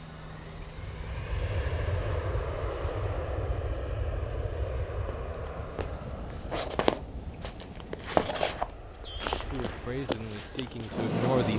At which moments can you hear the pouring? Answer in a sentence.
The pouring can't be heard in this clip.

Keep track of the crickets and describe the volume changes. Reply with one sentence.
The loudness of the crickets goes down, then up.